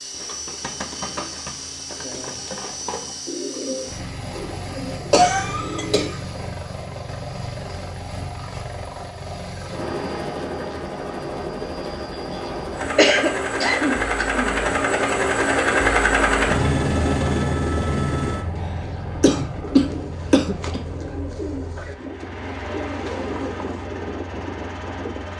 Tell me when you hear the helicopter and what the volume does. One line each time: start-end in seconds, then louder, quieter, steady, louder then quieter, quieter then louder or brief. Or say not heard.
0.0-25.3 louder then quieter.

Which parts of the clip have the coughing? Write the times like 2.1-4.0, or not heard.
5.1-6.2, 12.9-14.6, 18.6-20.8.